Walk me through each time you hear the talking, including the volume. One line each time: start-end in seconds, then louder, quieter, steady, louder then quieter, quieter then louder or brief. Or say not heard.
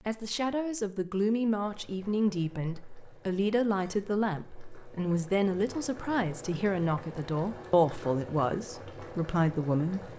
0.1-10.1 steady.